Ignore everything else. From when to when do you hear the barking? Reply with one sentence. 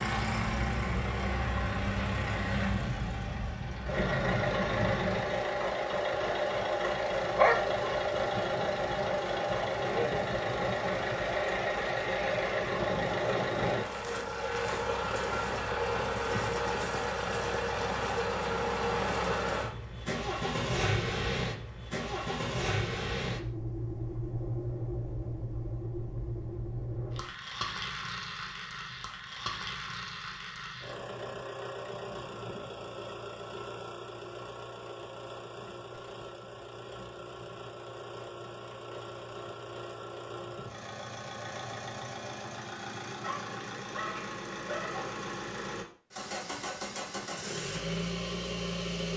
The barking can be heard from 7.0 to 8.1 s and from 43.2 to 45.1 s.